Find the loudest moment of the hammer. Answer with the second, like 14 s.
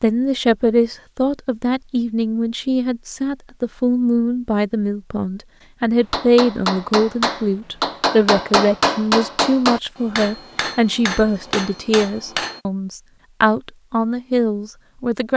9 s.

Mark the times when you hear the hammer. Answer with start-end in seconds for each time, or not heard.
6.0-12.6.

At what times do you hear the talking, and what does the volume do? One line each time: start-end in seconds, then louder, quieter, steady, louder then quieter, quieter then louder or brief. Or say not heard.
0.0-15.3 steady.